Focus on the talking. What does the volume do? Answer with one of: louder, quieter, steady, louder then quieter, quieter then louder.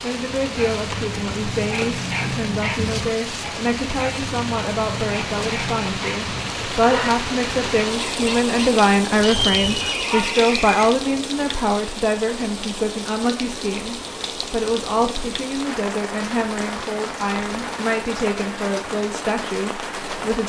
louder then quieter.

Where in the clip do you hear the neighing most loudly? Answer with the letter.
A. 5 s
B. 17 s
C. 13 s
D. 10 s
D.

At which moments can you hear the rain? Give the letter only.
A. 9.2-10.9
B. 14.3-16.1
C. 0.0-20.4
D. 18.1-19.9
C.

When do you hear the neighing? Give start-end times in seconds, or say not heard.
9.2-10.9.